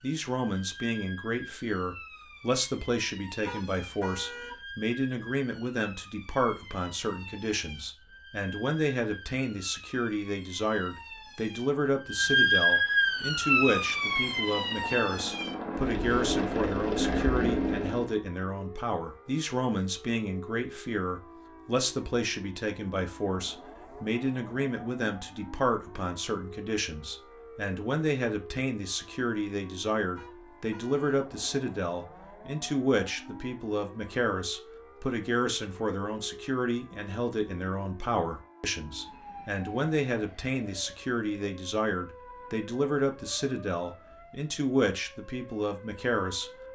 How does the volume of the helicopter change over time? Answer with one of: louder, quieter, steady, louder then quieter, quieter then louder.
louder.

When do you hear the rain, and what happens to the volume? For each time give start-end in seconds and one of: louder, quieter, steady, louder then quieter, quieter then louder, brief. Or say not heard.
not heard.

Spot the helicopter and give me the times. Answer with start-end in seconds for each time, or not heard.
12.8-18.2.